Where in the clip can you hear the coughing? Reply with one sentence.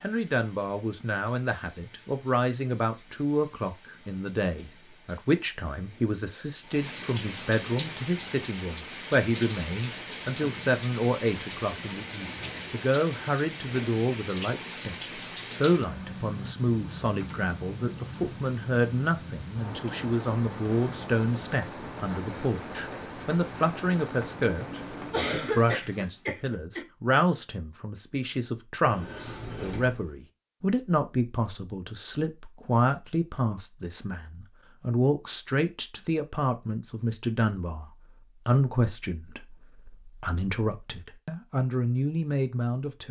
You can hear the coughing from 25.1 to 26.8 s.